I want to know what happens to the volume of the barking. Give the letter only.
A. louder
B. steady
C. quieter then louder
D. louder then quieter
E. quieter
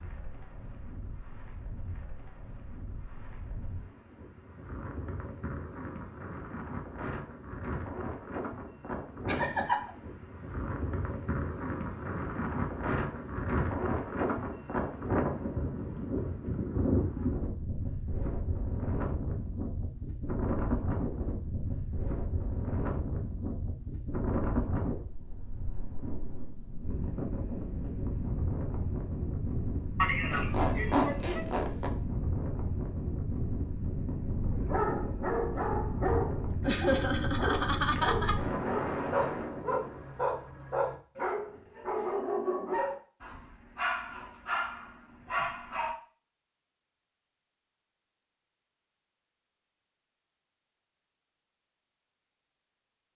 B.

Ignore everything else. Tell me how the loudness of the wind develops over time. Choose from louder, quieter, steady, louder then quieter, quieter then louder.
louder.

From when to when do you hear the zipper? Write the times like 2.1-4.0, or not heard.
30.3-31.9.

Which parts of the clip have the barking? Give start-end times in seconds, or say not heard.
34.5-46.0.